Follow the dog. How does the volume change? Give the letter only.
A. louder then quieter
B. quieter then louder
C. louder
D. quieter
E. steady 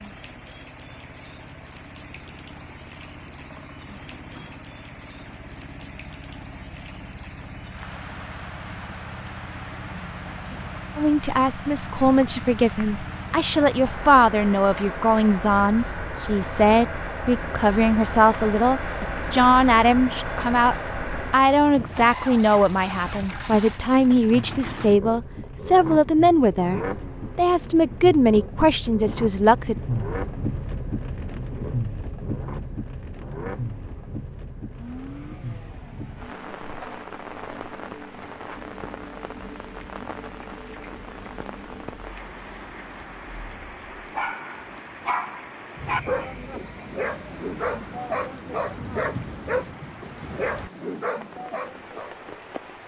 E.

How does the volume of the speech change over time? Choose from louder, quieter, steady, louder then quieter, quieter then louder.
steady.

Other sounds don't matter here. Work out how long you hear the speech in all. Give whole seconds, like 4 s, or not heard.
19 s.